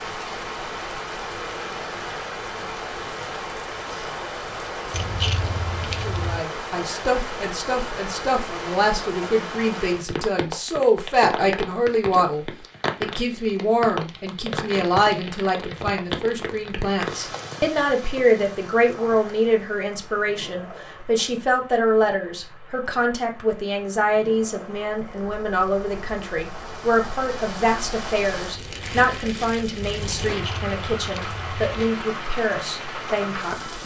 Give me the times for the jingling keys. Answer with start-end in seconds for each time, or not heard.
4.9-6.5, 30.3-31.9.